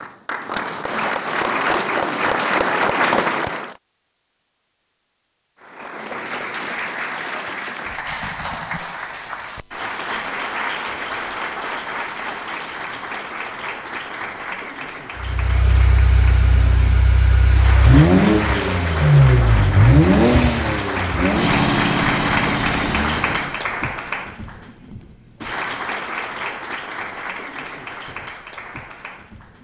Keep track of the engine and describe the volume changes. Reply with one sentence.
The volume of the engine goes up, then down.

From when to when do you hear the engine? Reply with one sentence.
The engine can be heard from 15.2 to 23.6 s.